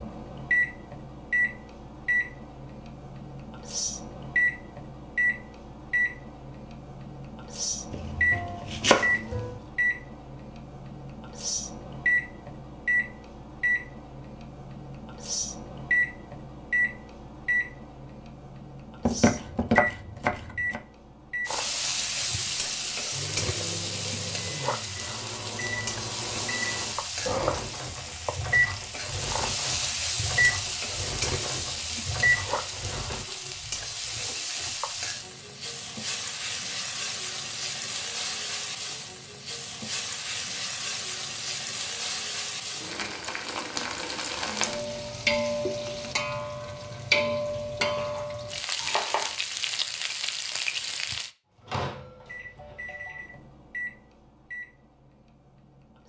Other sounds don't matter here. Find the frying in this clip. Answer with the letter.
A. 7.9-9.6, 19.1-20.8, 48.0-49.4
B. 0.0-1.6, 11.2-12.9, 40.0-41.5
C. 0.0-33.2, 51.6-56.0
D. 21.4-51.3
D.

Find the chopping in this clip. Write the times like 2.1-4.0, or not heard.
7.9-9.6, 19.1-20.8, 48.0-49.4.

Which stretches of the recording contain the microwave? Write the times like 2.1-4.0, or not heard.
0.0-33.2, 51.6-56.0.